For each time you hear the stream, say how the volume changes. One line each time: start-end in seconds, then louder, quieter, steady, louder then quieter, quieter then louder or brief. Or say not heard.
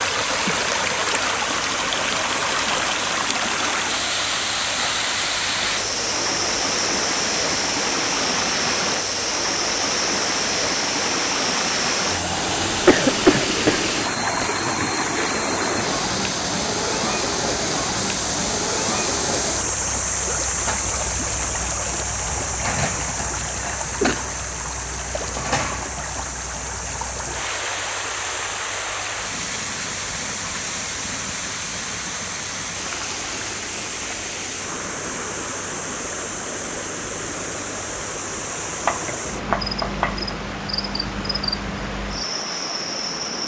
0.0-43.4 quieter.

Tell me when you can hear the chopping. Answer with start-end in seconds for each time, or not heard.
38.9-40.2.